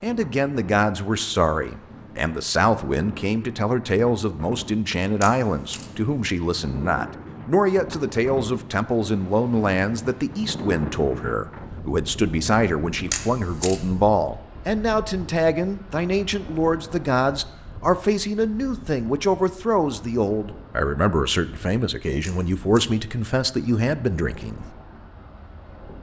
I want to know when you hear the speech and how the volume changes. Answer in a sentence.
The speech can be heard from 0.0 to 24.6 s, at a steady volume.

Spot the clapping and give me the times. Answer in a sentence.
You can't hear the clapping here.